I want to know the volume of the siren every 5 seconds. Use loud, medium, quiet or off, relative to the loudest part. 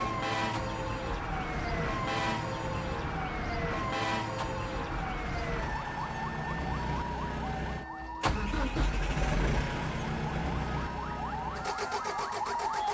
loud, medium, loud.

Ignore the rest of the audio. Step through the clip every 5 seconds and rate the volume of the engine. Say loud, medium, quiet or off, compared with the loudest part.
medium, loud, loud.